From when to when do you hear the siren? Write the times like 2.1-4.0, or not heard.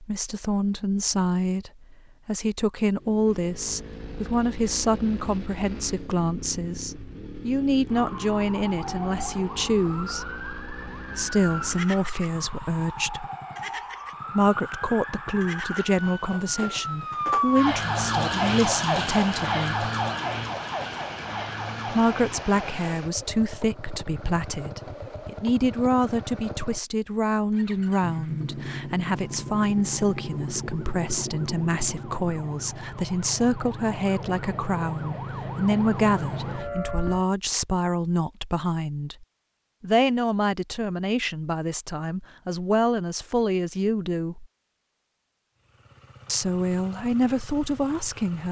7.9-22.9, 29.1-37.2.